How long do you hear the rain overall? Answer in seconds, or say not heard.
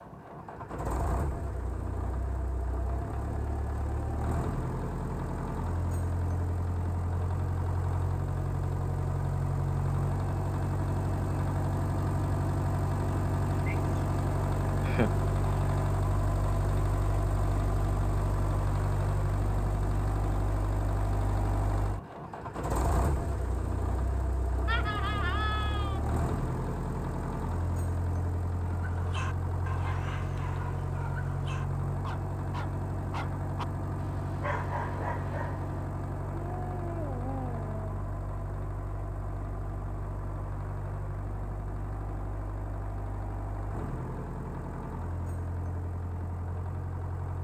not heard.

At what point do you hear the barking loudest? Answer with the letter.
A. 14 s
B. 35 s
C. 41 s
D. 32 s
B.